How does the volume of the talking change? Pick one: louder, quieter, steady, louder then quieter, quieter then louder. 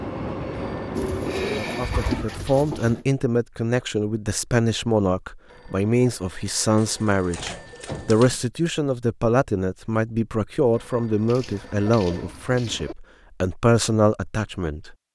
steady.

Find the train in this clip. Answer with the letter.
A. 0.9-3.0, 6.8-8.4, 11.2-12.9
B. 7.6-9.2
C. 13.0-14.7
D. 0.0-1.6
D.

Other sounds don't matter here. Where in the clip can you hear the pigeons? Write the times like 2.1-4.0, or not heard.
0.9-3.0, 6.8-8.4, 11.2-12.9.